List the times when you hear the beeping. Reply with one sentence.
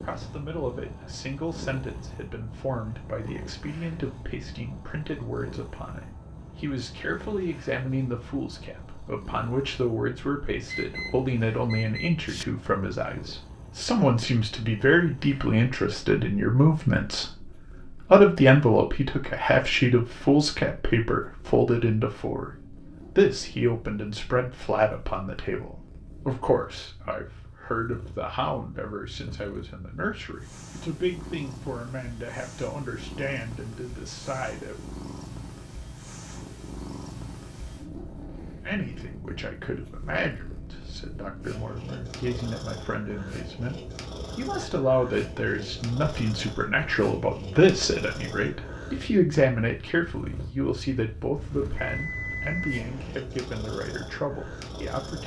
The beeping can be heard from 10.7 to 12.4 s and from 51.4 to 53.2 s.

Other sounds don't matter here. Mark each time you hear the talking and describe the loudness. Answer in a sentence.
The talking can be heard from 0.0 to 34.8 s, getting louder then quieter; and from 38.6 to 55.2 s, getting louder then quieter.